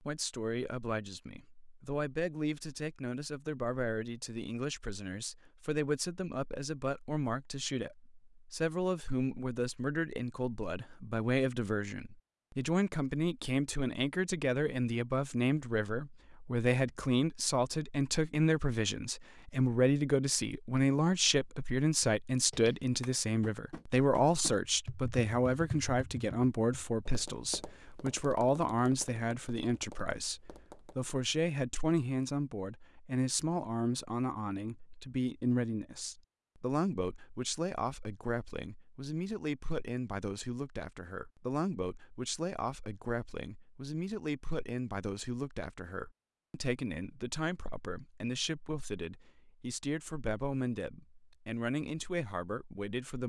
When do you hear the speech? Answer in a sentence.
You can hear the speech from 0.0 to 53.2 s.